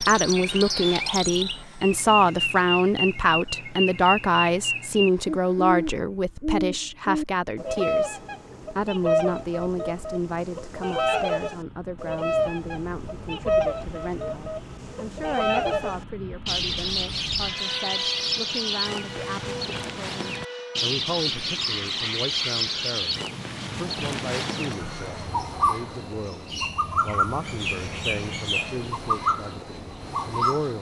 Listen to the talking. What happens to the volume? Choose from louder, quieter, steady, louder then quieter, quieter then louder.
quieter.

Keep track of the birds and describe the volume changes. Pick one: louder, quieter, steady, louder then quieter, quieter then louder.
steady.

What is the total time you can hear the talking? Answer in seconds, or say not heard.
31 s.